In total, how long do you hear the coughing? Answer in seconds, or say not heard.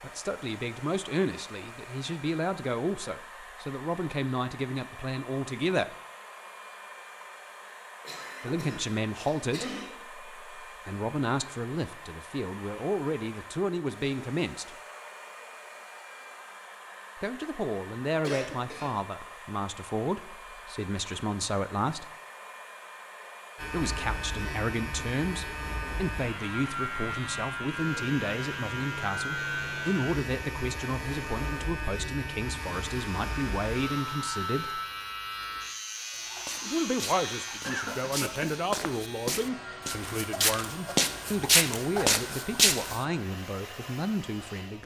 4 s.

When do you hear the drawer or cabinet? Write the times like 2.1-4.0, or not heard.
not heard.